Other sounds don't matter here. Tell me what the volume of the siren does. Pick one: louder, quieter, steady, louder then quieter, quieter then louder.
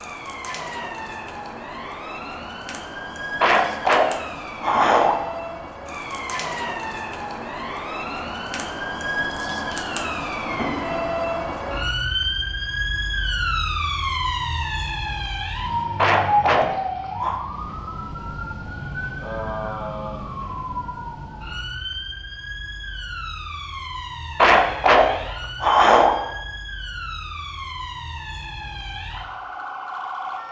louder then quieter.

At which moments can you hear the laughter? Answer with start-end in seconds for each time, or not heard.
3.4-5.2, 15.9-17.4, 24.4-26.1.